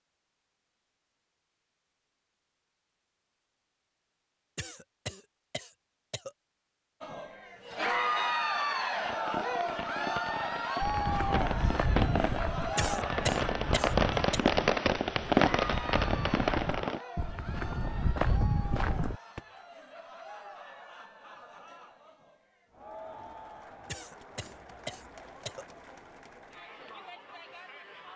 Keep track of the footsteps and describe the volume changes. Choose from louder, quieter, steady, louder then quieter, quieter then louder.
quieter then louder.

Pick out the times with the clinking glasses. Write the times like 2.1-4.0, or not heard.
not heard.